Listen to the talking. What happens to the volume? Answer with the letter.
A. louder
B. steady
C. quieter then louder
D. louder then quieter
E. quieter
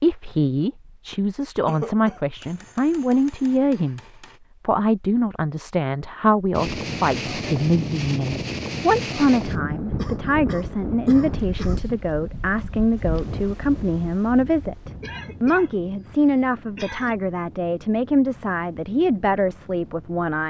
B.